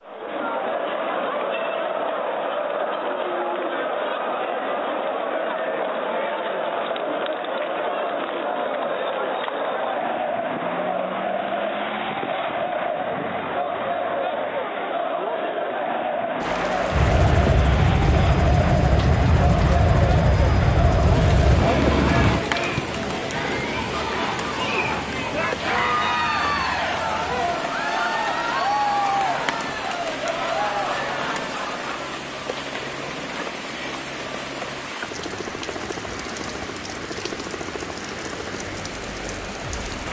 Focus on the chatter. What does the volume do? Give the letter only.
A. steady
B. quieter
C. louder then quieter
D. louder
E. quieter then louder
A.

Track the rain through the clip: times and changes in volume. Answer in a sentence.
You can hear the rain from 16.4 to 40.0 s, at a steady volume.